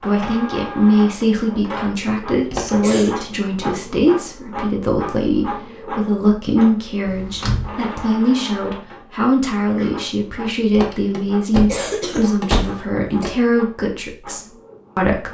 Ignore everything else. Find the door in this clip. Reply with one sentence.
The door can be heard from 2.5 to 2.9 s, from 7.0 to 7.8 s and from 10.7 to 13.3 s.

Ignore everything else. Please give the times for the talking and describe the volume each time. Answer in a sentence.
You can hear the talking from 0.0 to 15.3 s, at a steady volume.